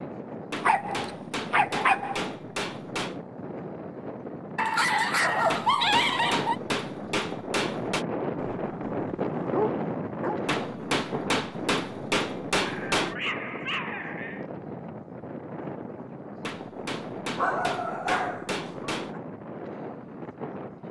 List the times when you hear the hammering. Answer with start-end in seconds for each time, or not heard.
0.5-3.2, 5.5-8.1, 10.4-13.2, 16.4-19.1.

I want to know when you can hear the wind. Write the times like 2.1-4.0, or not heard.
0.0-20.8.